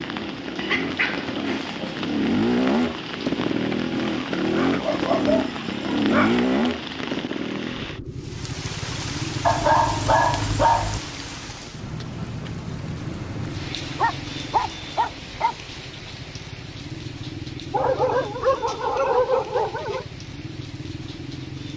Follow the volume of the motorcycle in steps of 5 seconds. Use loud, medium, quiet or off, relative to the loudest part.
loud, loud, medium, quiet, quiet.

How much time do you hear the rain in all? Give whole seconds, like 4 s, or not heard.
22 s.